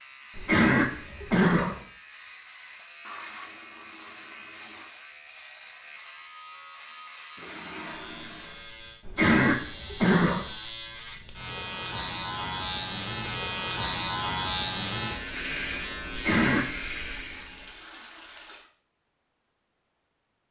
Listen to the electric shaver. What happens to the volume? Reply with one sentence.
The loudness of the electric shaver goes up.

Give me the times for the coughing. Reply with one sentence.
You can hear the coughing from 0.3 to 1.8 s, from 9.1 to 10.5 s and from 16.1 to 16.6 s.